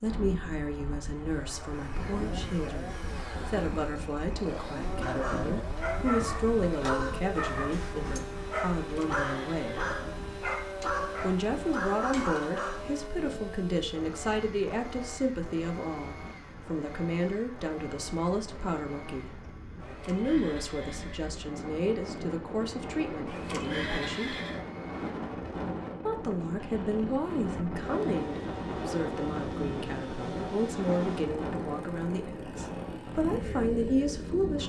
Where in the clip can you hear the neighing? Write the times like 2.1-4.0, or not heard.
8.8-9.9, 19.8-21.4, 23.2-24.6.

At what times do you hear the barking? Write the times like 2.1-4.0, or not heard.
5.0-13.1.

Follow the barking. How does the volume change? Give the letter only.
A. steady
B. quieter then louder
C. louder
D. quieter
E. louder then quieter
A.